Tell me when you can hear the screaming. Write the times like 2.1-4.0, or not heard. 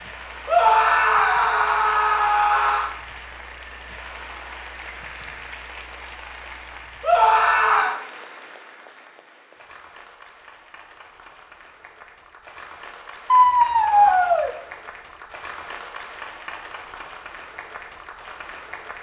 0.5-2.9, 7.0-8.0, 13.3-14.5.